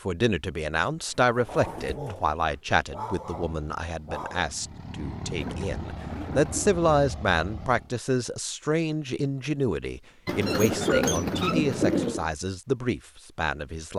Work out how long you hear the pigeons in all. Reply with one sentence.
You can hear the pigeons for 5 seconds altogether.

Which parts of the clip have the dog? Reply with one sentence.
The dog can be heard from 1.4 to 4.5 s.